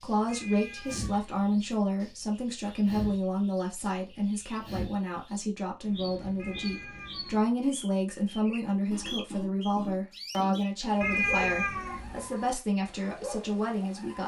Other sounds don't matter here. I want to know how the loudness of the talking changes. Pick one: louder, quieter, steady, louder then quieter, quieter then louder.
steady.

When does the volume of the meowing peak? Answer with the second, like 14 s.
11 s.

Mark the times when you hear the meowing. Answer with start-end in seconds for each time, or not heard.
0.2-1.8, 6.3-7.4, 11.0-12.3.